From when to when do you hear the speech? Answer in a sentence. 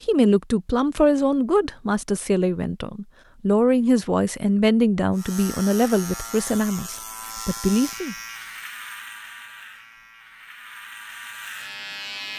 You can hear the speech from 0.1 to 8.2 s.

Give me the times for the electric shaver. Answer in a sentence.
You can hear the electric shaver from 5.1 to 12.3 s.